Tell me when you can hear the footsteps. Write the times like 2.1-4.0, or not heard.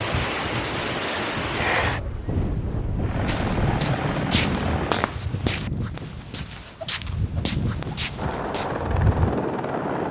3.2-8.8.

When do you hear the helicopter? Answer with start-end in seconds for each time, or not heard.
3.0-5.1, 7.8-10.0.